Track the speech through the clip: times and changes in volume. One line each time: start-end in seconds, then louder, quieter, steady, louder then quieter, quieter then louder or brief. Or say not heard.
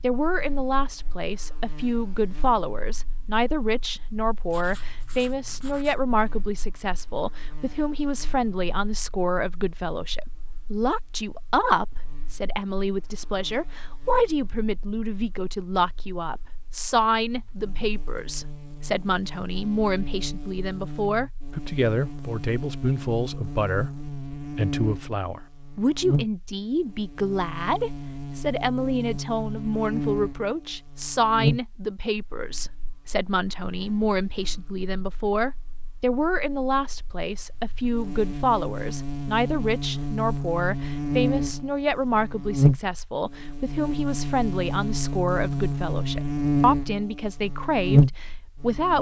0.0-48.9 steady.